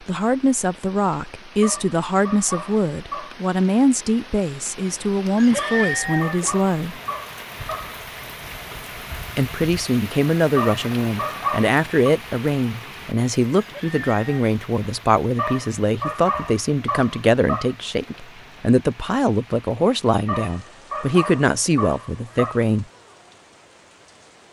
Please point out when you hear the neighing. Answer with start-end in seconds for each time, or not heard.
5.3-6.5, 13.6-14.2.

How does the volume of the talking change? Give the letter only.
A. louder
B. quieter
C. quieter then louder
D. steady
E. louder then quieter
D.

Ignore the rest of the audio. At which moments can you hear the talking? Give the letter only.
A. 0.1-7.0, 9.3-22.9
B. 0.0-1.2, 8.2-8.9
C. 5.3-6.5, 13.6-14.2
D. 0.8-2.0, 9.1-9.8
A.